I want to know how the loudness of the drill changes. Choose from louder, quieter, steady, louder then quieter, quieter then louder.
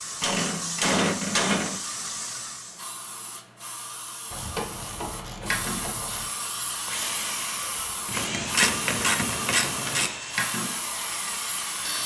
steady.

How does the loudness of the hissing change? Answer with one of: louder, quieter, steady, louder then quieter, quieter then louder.
quieter then louder.